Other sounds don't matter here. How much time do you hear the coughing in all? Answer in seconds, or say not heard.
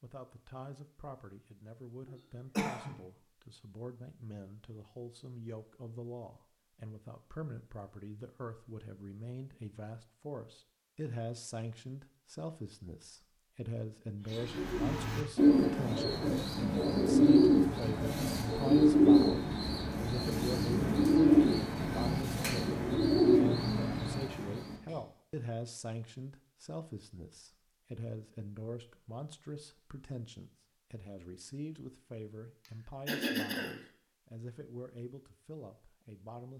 2 s.